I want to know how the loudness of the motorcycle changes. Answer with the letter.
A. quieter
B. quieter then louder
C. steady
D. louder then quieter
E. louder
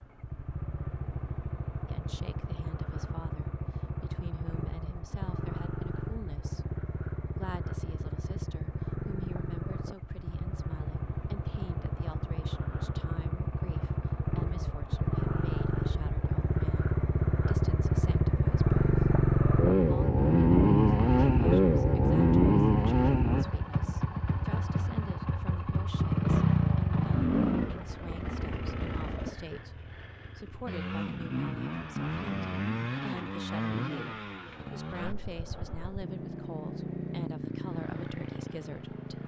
D.